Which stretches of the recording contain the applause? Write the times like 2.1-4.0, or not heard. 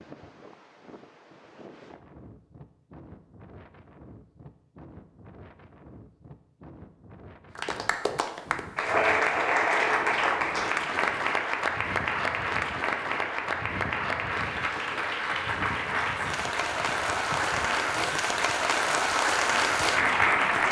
7.5-20.6.